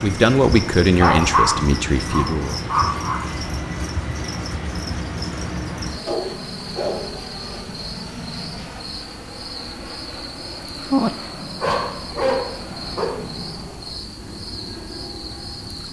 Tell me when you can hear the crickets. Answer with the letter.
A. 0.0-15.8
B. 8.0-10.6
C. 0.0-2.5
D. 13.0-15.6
A.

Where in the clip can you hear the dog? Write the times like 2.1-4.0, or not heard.
0.9-3.2, 6.0-7.6, 11.6-13.2.